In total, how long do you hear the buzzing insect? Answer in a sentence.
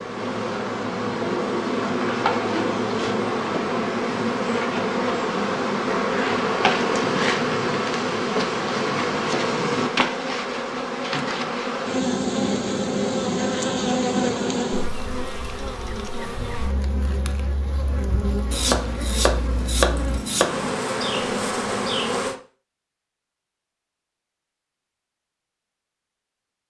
You can hear the buzzing insect for 22 seconds altogether.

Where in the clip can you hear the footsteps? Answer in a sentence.
You can't hear the footsteps here.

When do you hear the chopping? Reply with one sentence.
The chopping can be heard from 18.5 to 20.8 s.